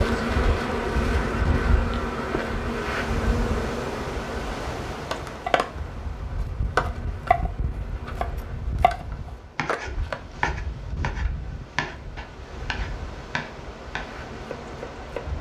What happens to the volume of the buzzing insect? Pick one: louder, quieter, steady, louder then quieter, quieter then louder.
quieter.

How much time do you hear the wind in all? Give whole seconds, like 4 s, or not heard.
15 s.